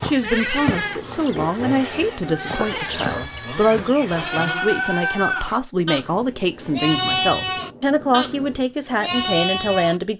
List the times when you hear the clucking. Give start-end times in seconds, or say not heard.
not heard.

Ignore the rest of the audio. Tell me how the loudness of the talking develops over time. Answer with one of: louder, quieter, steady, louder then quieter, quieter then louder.
steady.